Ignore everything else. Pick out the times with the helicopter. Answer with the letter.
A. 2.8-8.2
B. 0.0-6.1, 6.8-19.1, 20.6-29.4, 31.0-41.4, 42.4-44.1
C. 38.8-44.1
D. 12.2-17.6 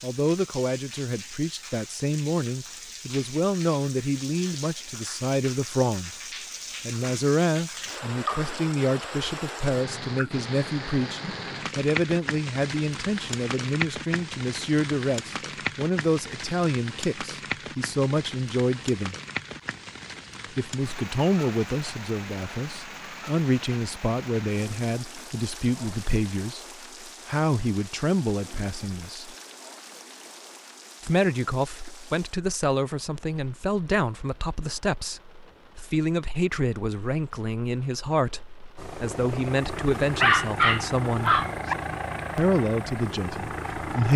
C.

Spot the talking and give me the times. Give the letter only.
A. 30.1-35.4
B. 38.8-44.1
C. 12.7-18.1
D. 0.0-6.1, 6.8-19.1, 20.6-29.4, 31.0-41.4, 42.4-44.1
D.